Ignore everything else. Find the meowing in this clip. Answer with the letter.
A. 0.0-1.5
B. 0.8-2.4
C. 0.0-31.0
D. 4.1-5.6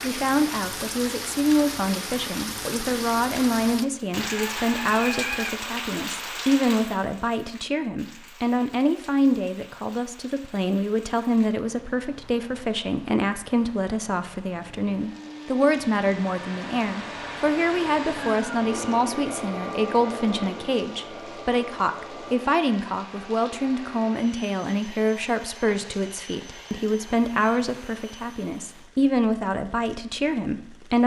D.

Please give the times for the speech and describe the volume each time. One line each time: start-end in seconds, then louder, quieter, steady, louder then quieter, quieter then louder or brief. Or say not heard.
0.0-31.0 steady.